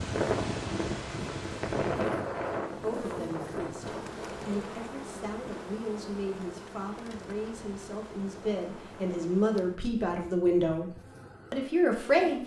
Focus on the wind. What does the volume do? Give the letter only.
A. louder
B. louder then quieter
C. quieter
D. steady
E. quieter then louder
C.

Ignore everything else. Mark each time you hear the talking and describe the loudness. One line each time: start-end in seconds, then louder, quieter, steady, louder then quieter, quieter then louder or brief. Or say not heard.
2.7-12.4 louder.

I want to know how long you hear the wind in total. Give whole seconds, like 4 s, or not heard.
9 s.